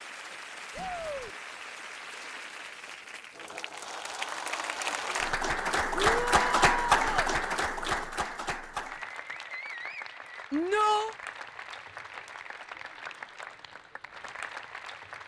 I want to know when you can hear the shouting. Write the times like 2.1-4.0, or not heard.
0.7-1.4, 6.0-7.3, 10.5-11.2.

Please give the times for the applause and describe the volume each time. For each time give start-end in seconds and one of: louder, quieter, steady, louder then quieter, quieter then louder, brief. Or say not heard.
0.0-15.2 louder then quieter.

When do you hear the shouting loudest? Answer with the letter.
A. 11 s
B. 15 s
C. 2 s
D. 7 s
A.